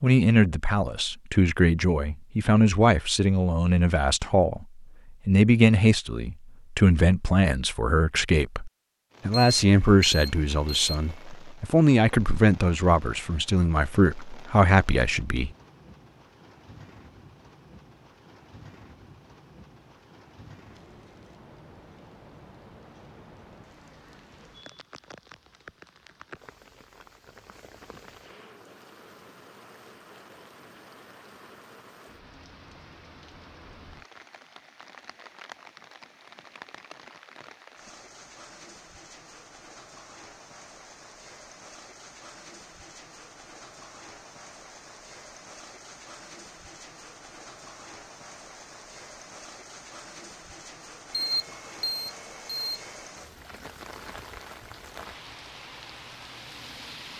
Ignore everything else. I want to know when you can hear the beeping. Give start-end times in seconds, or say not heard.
9.3-11.2, 51.1-53.0.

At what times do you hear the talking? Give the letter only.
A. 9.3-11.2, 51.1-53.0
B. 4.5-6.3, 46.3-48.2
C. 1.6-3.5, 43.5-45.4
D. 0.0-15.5
D.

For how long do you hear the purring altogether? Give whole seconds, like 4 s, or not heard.
not heard.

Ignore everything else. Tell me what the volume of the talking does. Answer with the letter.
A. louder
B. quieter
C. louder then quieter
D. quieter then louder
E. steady
E.